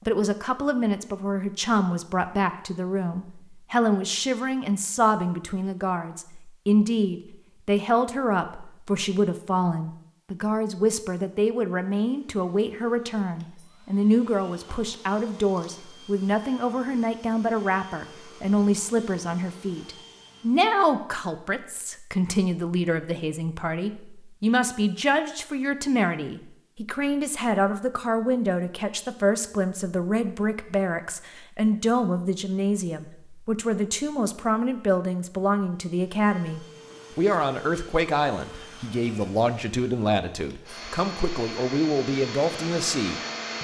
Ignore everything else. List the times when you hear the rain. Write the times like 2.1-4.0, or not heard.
not heard.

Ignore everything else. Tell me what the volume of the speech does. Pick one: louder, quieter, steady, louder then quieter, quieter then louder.
steady.